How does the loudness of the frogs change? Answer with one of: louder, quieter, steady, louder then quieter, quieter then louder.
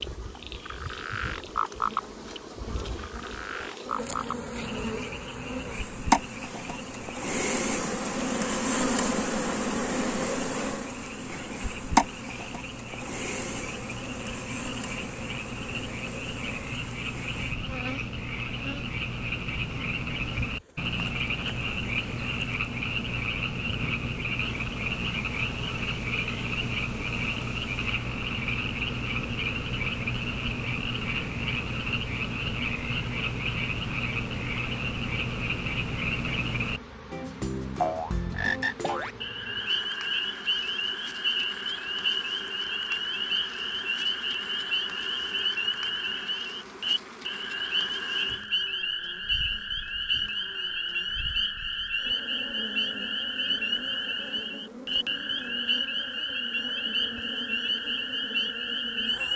louder.